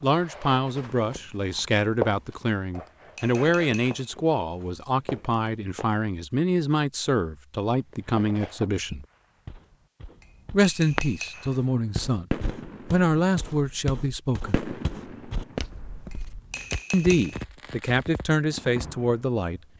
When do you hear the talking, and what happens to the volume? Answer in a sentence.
You can hear the talking from 0.0 to 9.1 s, at a steady volume; briefly from 10.5 to 12.2 s; briefly from 12.9 to 14.6 s; and briefly from 16.9 to 19.6 s.